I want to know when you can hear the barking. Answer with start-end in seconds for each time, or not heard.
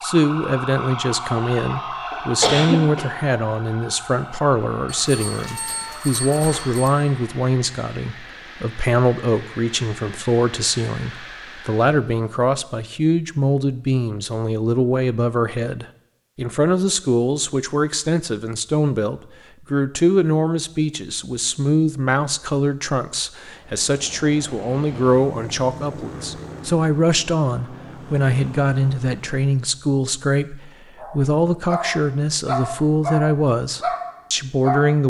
30.9-35.0.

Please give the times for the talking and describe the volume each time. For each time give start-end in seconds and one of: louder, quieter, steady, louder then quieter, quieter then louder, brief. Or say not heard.
0.0-35.0 steady.